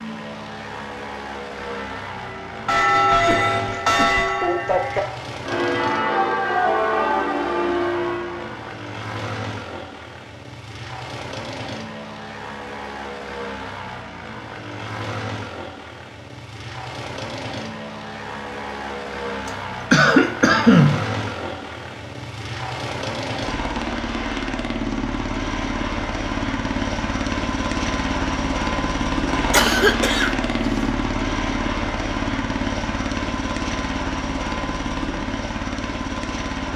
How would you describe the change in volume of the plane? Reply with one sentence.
The loudness of the plane goes up.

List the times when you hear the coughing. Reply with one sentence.
The coughing can be heard from 3.1 to 4.3 s, from 19.4 to 21.1 s and from 29.5 to 30.9 s.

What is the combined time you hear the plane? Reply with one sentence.
You can hear the plane for 37 seconds altogether.